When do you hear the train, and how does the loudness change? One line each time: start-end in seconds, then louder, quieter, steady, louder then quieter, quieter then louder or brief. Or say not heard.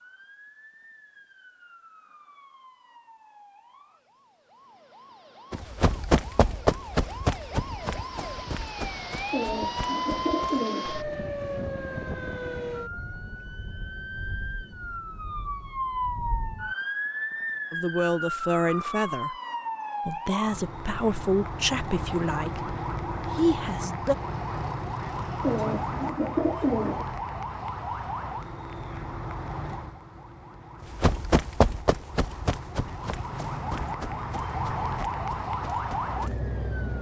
not heard.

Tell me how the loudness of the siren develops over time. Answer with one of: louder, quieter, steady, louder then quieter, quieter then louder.
louder.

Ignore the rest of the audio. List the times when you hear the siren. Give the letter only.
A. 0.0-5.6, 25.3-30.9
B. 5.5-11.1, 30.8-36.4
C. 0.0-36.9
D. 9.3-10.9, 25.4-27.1
C.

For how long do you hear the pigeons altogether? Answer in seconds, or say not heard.
3 s.